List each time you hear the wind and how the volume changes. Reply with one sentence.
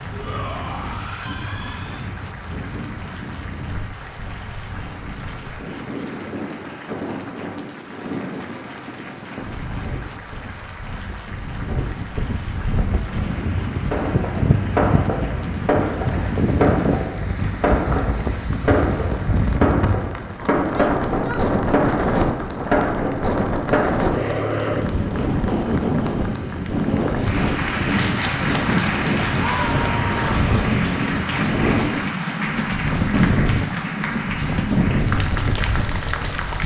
You can hear the wind from 0.0 to 36.6 s, getting louder.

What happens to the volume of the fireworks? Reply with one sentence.
The loudness of the fireworks stays about the same.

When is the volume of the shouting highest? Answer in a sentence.
The volume of the shouting peaks at 30 seconds.